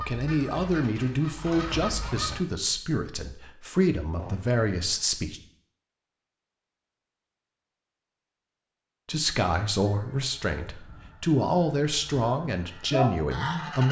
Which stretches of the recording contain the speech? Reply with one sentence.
The speech can be heard from 0.0 to 5.4 s and from 9.1 to 13.8 s.